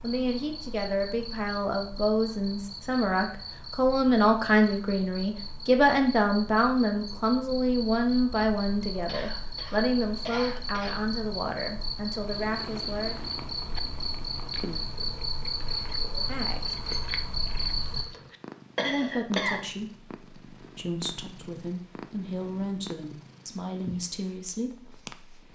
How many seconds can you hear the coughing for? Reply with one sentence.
You can hear the coughing for 3 seconds altogether.